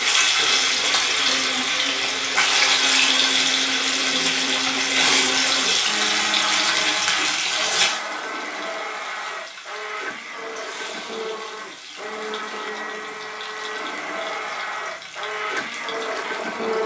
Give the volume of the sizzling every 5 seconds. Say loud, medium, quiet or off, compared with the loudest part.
loud, loud, quiet, quiet.